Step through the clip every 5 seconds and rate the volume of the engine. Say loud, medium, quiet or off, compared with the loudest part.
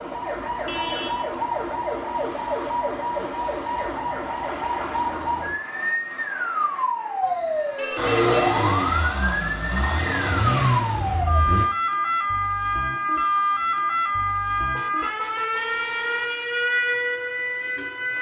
off, loud, loud, off.